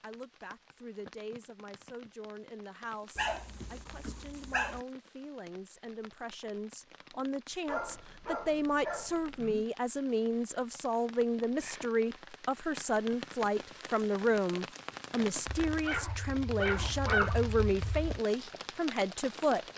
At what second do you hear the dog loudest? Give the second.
17 s.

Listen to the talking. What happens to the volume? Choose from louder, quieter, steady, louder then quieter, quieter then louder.
louder.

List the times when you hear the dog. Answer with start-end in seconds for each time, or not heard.
3.1-4.8, 7.7-9.7, 15.7-18.2.